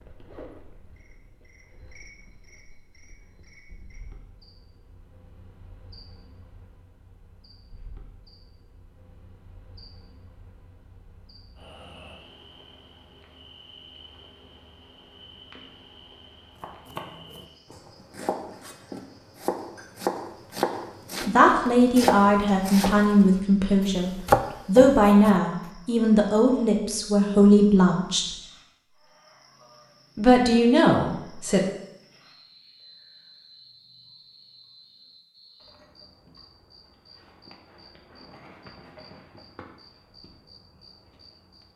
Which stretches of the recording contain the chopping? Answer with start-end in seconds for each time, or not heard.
16.6-25.4.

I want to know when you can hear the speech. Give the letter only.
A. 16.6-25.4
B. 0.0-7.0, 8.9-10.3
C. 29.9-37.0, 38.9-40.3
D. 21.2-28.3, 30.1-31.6
D.